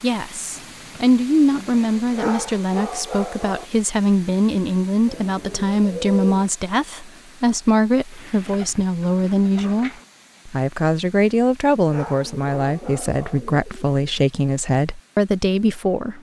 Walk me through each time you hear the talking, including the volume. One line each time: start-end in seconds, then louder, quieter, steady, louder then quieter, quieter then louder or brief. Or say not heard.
0.0-16.1 steady.